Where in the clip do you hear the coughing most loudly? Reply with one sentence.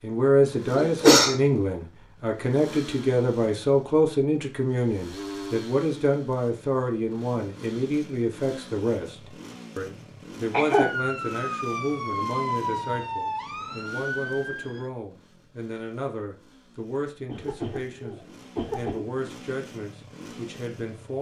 The loudest moment of the coughing is at 1 second.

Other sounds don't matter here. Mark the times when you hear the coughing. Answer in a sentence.
You can hear the coughing from 0.8 to 1.4 s, from 10.5 to 10.9 s and from 17.2 to 19.1 s.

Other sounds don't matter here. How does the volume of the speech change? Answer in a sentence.
The loudness of the speech goes down.